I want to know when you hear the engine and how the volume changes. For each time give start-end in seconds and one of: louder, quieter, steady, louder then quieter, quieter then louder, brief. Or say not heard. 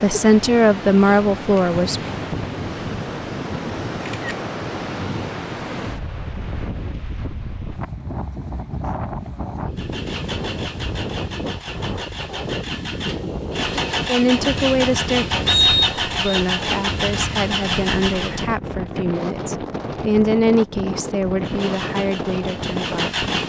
9.8-18.5 louder
21.4-23.4 brief.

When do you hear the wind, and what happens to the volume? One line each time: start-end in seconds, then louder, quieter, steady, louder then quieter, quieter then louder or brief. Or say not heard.
0.0-23.4 steady.